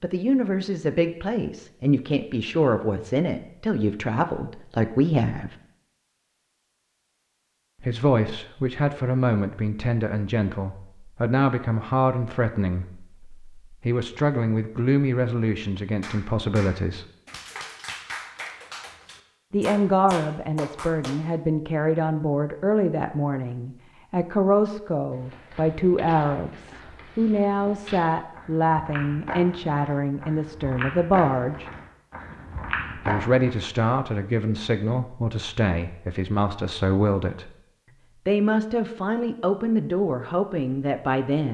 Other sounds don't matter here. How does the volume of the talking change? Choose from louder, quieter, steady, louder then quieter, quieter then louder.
steady.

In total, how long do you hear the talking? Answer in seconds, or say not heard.
35 s.